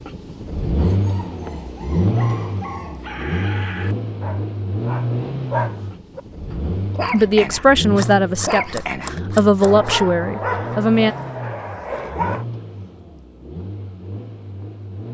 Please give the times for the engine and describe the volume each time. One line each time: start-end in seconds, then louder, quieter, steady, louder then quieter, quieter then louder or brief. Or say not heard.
0.0-15.0 quieter.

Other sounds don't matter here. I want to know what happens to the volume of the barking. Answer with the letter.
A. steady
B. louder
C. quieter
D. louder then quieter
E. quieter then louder
B.